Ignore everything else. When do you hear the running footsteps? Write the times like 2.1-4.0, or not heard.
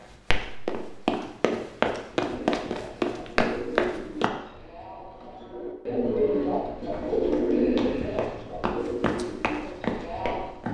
0.0-4.3, 6.9-10.6.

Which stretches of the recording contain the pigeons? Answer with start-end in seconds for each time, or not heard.
2.1-10.6.